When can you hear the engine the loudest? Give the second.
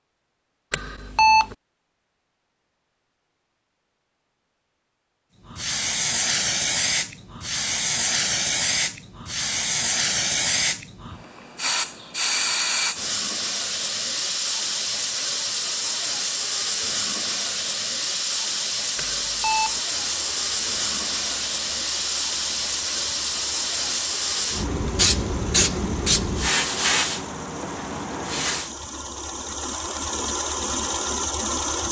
31 s.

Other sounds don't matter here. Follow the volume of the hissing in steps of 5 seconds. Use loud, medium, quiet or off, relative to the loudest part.
off, loud, loud, loud, loud, loud, off.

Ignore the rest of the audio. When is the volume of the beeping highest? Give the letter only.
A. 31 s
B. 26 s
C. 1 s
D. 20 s
C.